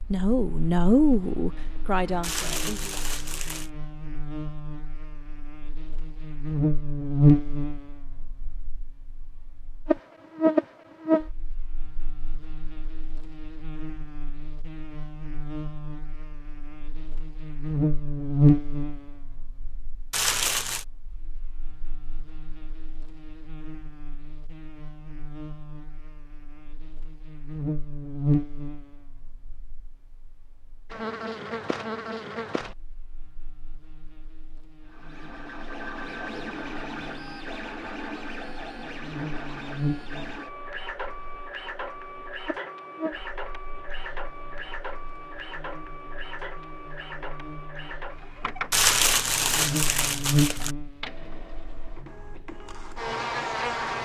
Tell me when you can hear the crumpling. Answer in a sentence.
You can hear the crumpling from 2.2 to 3.7 s, from 20.1 to 20.9 s and from 48.7 to 50.8 s.